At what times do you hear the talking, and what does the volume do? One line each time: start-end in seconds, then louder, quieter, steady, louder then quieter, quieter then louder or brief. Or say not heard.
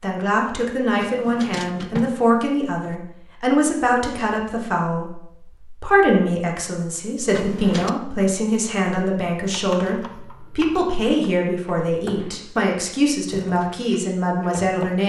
0.0-15.0 steady.